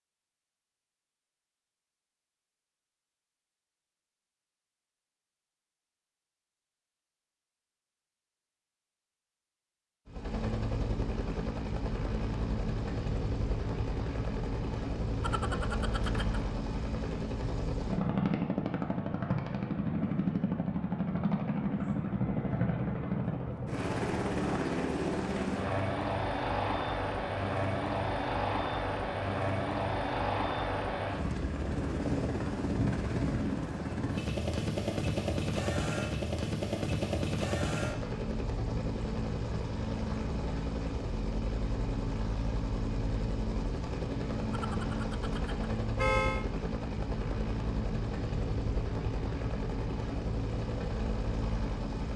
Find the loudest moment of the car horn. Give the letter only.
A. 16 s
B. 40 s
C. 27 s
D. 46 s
D.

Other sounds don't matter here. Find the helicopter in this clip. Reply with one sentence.
The helicopter can be heard from 10.1 to 52.1 s.